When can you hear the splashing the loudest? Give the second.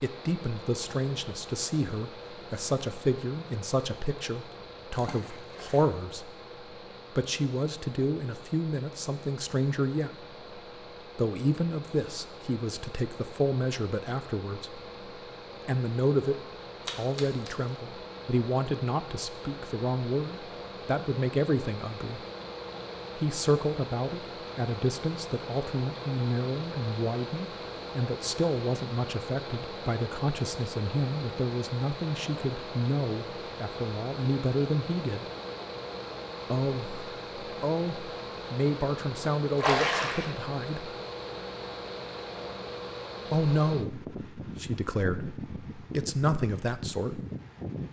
40 s.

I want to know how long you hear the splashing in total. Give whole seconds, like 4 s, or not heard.
2 s.